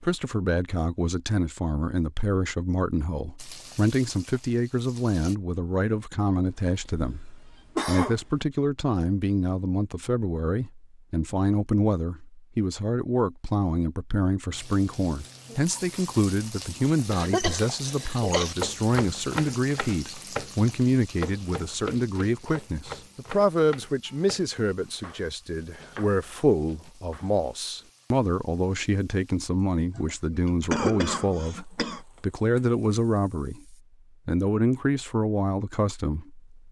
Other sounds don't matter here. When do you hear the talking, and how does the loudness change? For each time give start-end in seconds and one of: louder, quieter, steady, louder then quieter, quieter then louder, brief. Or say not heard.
0.0-36.5 steady.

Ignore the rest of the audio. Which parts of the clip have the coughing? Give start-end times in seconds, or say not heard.
6.5-8.4, 17.1-18.6, 29.9-32.0.